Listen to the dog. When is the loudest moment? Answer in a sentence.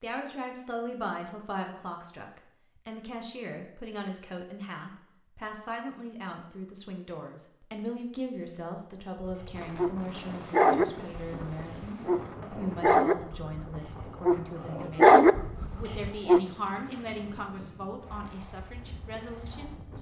The volume of the dog peaks at 15 seconds.